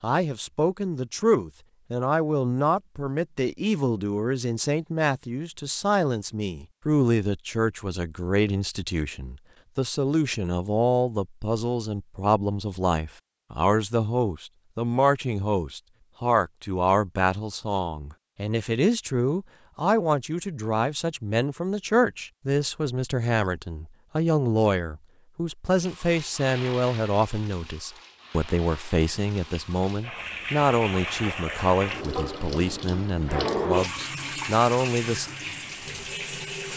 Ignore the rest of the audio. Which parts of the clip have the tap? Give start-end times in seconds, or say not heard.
25.6-36.7.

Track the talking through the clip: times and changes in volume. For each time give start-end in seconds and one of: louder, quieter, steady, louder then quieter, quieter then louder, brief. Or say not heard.
0.0-35.3 steady.